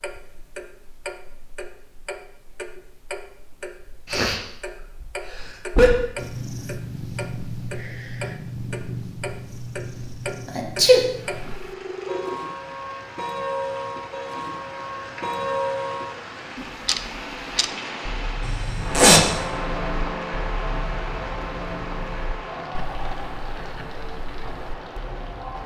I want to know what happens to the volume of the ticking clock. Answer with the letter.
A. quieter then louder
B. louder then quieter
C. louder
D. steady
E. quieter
B.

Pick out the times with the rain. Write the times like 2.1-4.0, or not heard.
11.1-25.6.